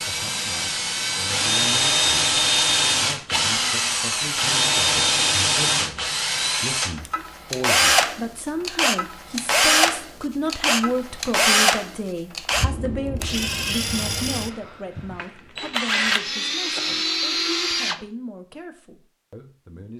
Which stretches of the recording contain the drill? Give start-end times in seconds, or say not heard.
0.0-18.0.